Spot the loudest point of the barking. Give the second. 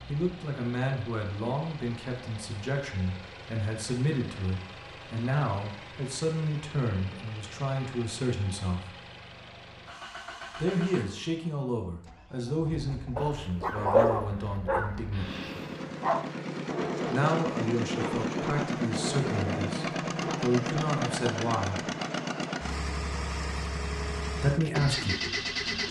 14 s.